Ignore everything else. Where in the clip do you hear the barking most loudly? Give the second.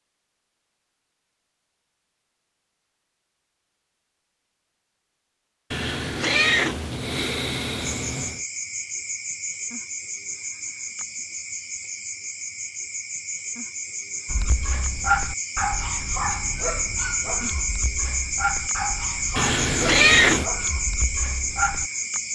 15 s.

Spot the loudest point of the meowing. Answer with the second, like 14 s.
20 s.